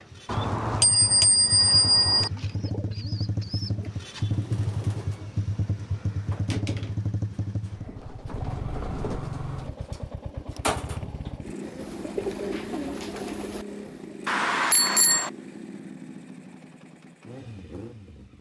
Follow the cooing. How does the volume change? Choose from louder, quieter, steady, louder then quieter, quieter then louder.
louder.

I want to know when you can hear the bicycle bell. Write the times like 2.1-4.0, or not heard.
0.2-2.3, 14.2-15.3.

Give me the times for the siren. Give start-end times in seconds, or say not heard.
not heard.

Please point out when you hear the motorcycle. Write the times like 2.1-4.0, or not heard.
0.0-18.3.